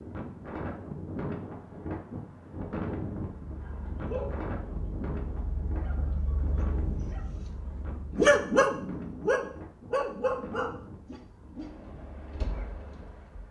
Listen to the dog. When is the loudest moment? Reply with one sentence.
The volume of the dog peaks at 8 seconds.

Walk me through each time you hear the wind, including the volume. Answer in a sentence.
The wind can be heard from 0.0 to 13.4 s, getting quieter.